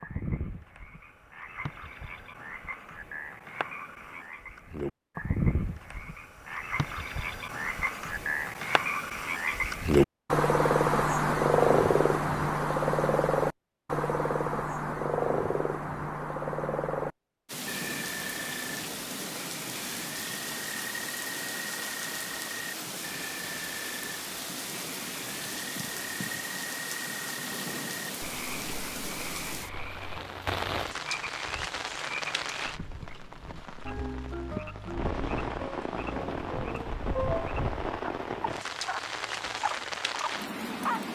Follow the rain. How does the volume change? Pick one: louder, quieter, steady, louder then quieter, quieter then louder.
steady.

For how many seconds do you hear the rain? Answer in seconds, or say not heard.
24 s.